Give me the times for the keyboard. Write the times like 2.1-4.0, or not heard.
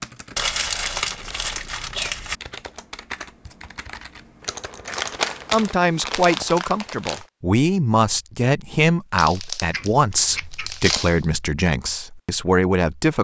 0.0-5.8.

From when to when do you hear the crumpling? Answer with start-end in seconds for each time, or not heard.
0.3-2.4, 4.9-7.2, 9.2-11.2.